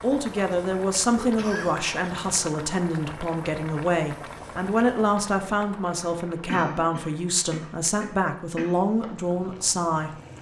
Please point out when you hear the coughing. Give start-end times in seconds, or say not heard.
1.1-1.9, 6.5-8.8.